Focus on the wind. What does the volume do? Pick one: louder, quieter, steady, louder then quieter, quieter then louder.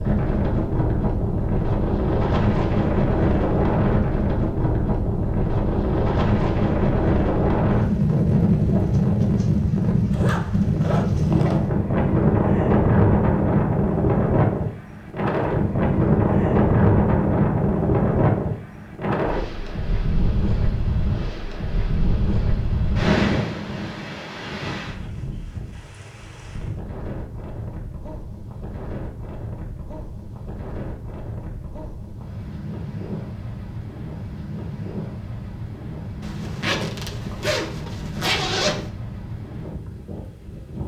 quieter.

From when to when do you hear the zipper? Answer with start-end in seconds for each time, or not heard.
10.1-11.7, 36.2-38.9.